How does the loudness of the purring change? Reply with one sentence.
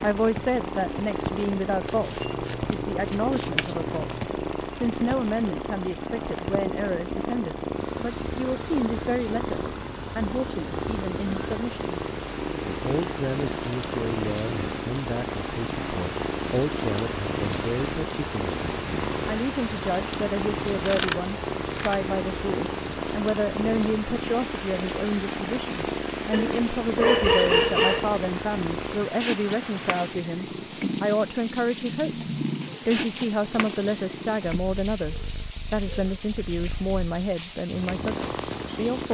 The loudness of the purring stays about the same.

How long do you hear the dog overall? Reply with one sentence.
The dog can be heard for 2 seconds in total.